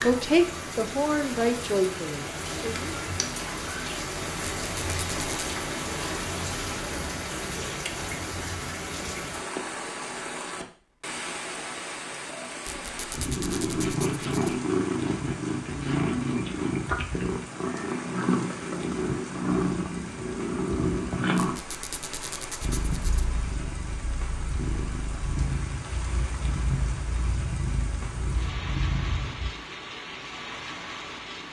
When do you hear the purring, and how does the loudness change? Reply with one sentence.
The purring can be heard from 13.2 to 29.5 s, getting quieter.